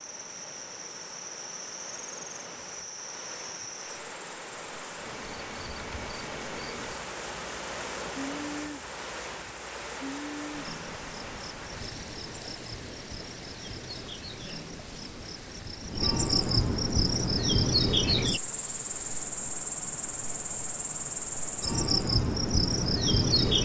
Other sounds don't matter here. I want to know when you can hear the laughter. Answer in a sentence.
You can't hear the laughter here.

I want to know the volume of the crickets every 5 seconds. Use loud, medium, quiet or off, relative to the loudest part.
quiet, quiet, quiet, loud, loud.